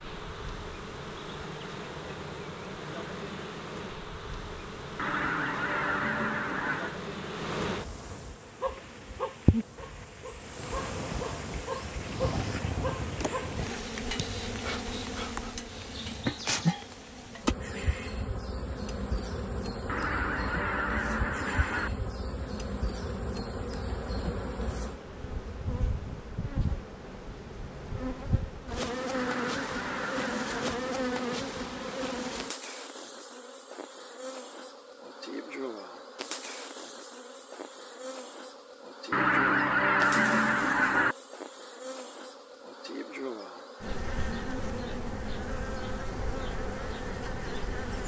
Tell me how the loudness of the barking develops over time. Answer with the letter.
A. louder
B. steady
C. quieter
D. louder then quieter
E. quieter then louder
E.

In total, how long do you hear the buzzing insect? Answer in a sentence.
You can hear the buzzing insect for 48 seconds altogether.